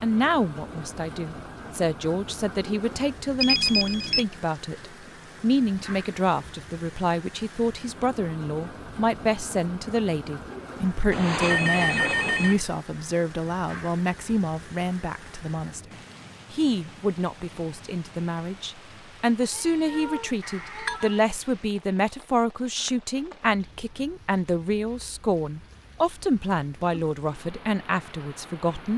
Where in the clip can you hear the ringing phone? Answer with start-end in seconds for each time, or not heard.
3.4-4.2, 11.1-12.6, 20.4-21.2.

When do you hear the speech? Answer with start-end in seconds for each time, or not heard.
0.0-15.9, 16.5-28.9.